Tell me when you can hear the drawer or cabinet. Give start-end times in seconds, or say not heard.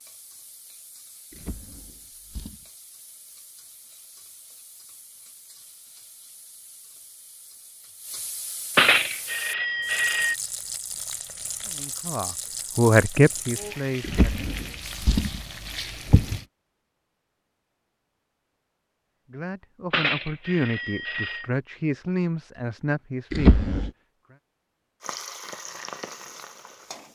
1.3-2.6, 14.0-16.4, 23.3-23.9.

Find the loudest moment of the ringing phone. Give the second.
9 s.